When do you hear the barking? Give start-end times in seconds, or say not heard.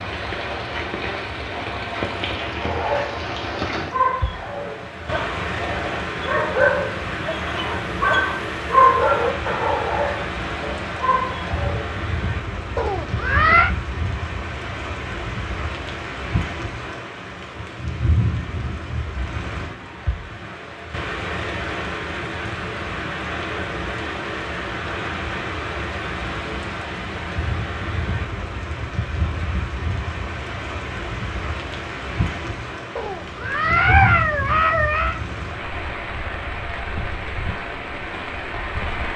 2.6-12.0.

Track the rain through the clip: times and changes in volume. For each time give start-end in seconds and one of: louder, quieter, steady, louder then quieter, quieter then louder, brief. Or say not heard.
0.0-39.1 steady.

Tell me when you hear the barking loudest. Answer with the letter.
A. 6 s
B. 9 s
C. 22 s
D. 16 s
B.